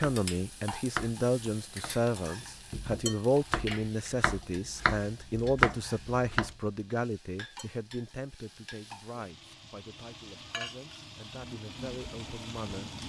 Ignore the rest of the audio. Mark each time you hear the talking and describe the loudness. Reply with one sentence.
The talking can be heard from 0.0 to 13.0 s, getting quieter.